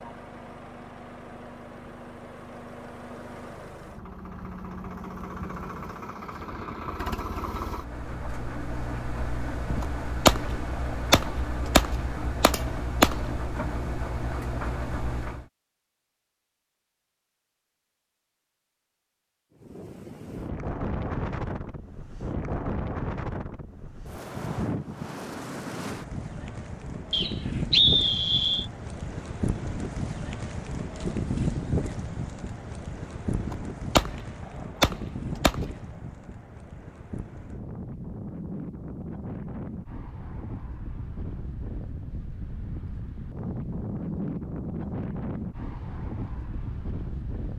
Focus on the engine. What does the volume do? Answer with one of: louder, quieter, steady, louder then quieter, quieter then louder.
louder.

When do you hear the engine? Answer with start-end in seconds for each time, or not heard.
0.0-15.5.